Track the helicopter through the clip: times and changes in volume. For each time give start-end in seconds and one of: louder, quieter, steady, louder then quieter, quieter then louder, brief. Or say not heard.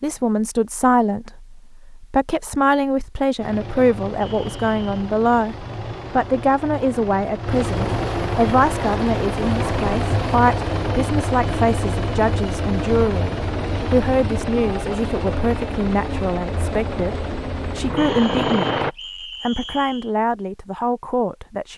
3.4-18.9 louder.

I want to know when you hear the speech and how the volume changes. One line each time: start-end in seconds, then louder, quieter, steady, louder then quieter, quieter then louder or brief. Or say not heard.
0.0-21.7 steady.